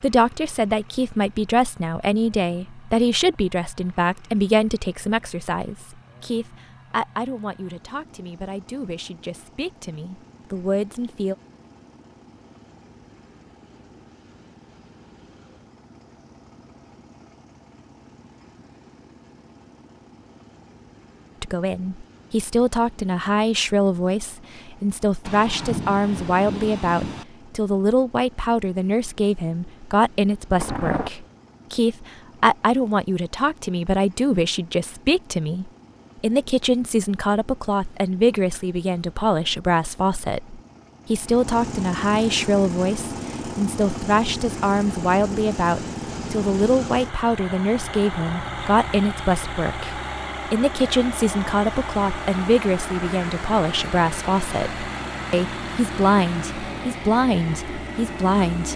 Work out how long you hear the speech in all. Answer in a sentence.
You can hear the speech for 49 seconds altogether.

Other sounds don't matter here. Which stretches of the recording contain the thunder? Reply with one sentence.
The thunder can be heard from 25.2 to 27.2 s and from 30.6 to 31.1 s.